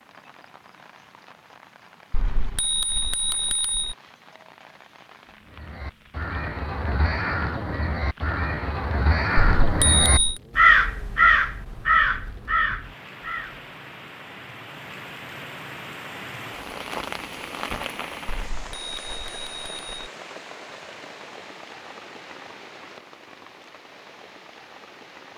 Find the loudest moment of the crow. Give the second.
11 s.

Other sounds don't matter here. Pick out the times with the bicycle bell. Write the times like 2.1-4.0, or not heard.
2.1-4.0, 9.6-10.4, 18.2-20.1.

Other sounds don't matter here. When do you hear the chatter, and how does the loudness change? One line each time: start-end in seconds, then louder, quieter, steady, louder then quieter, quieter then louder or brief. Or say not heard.
not heard.